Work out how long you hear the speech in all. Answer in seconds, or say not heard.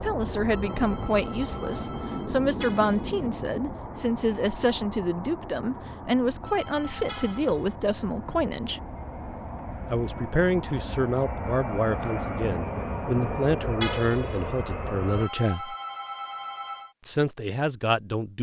16 s.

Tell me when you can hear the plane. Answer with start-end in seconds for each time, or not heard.
0.0-15.3.